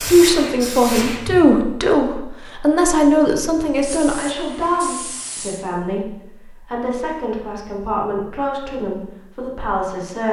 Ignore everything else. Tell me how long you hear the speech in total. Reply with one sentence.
You can hear the speech for 10 seconds altogether.